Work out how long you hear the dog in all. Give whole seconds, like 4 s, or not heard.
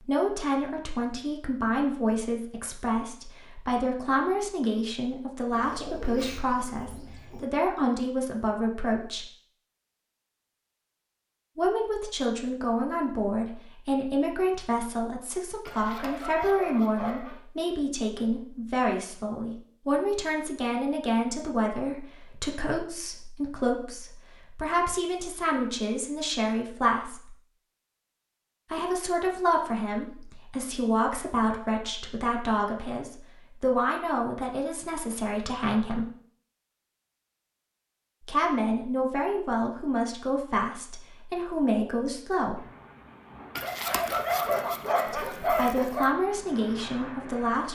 4 s.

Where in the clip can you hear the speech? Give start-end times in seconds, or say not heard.
0.1-9.2, 11.6-27.4, 28.7-36.1, 38.2-42.6, 45.1-47.7.